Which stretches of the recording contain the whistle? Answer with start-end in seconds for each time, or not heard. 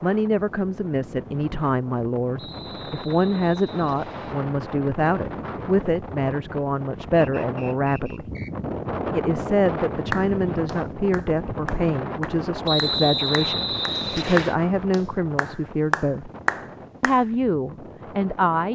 2.4-4.3, 7.2-8.5, 12.7-14.6.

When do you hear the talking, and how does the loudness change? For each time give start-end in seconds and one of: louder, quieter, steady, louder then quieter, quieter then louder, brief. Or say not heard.
0.0-8.2 steady
9.2-16.3 steady
17.0-18.6 brief.